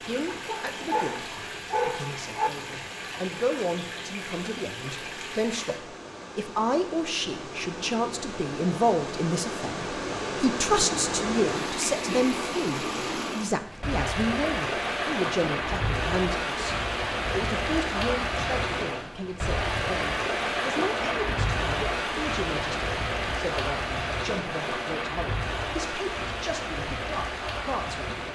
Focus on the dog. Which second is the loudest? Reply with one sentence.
The loudest moment of the dog is at 2 seconds.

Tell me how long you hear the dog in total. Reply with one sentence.
The dog can be heard for 2 seconds in total.